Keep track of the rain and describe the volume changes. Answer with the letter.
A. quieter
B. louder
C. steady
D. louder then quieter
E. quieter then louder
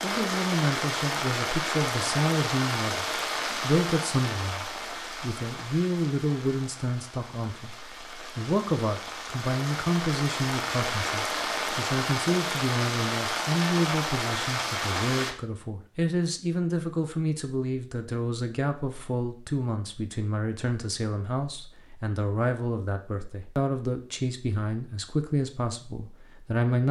E.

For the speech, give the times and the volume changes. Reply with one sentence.
You can hear the speech from 0.0 to 26.8 s, at a steady volume.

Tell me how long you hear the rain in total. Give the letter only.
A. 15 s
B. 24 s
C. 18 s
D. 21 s
A.